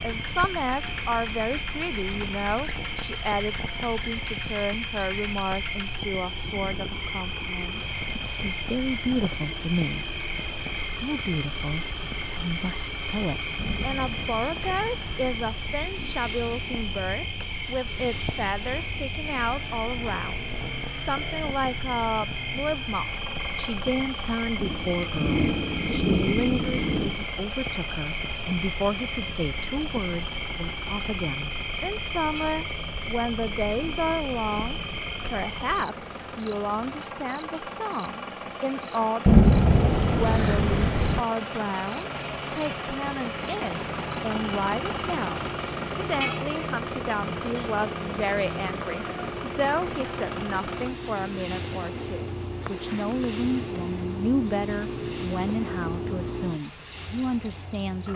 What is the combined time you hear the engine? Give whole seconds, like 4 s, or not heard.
58 s.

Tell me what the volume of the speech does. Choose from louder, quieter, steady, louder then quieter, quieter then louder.
steady.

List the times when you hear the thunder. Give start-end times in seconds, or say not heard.
13.6-15.6, 24.6-27.2, 39.2-41.2.